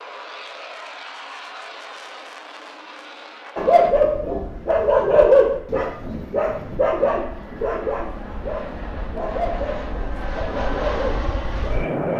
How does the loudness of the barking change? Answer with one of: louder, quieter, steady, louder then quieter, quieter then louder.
quieter.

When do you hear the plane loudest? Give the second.
12 s.